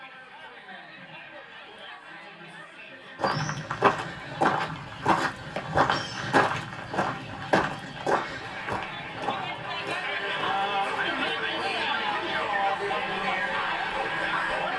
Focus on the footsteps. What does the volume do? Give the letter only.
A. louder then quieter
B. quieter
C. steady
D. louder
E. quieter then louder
B.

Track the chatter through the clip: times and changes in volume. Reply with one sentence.
You can hear the chatter from 0.0 to 14.7 s, getting louder.